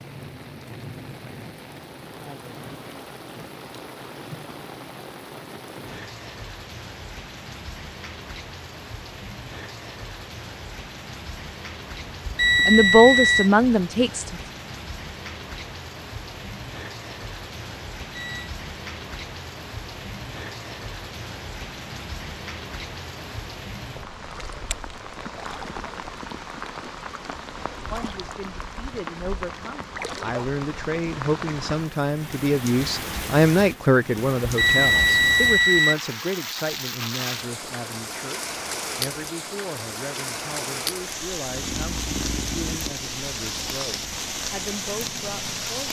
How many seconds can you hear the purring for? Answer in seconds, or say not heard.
4 s.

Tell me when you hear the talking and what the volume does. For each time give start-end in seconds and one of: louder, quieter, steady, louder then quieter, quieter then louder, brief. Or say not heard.
12.7-14.3 brief
27.9-45.8 louder then quieter.